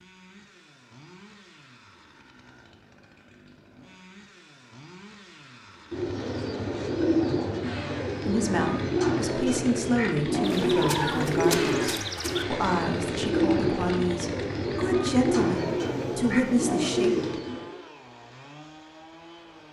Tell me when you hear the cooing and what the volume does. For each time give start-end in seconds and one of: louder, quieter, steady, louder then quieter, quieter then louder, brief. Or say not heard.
5.9-17.8 steady.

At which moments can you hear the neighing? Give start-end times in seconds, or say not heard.
10.4-12.4.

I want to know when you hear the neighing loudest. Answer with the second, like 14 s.
11 s.